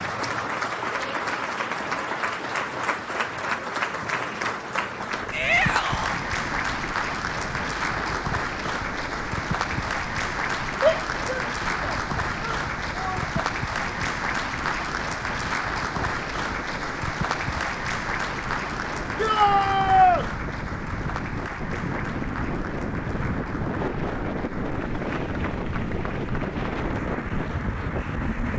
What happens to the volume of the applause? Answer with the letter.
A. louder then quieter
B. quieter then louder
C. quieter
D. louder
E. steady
C.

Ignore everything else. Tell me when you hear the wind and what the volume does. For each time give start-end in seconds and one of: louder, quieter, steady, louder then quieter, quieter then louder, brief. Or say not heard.
5.2-28.5 louder.